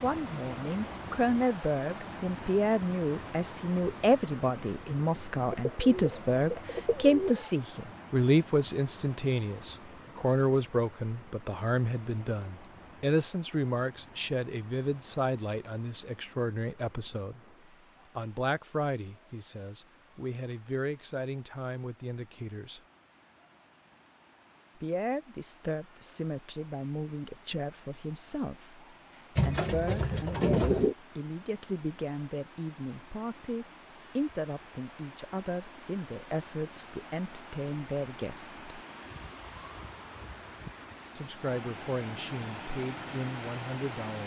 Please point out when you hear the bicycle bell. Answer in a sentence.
You can't hear the bicycle bell here.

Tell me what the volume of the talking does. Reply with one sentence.
The loudness of the talking goes down.